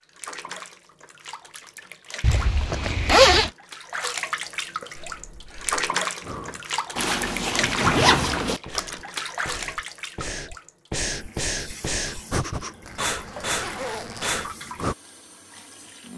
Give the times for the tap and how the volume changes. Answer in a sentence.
You can hear the tap from 0.0 to 16.1 s, getting louder then quieter.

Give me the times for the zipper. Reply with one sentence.
You can hear the zipper from 2.2 to 3.5 s, from 7.0 to 8.6 s and from 12.8 to 14.4 s.